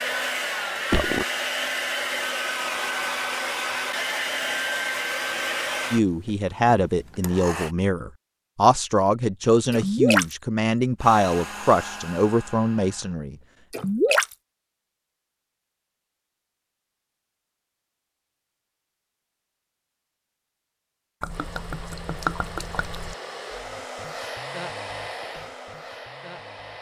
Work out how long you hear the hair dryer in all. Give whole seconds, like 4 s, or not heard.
16 s.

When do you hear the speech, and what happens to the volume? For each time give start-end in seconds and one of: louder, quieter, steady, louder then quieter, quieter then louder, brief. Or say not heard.
5.9-13.3 steady.